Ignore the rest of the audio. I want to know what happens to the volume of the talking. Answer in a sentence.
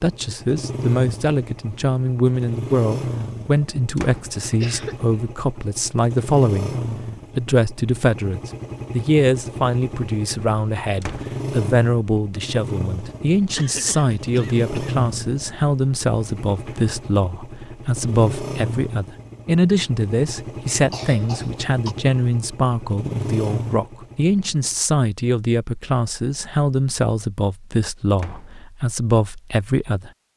The volume of the talking stays about the same.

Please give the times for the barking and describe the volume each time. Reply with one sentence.
You can't hear the barking here.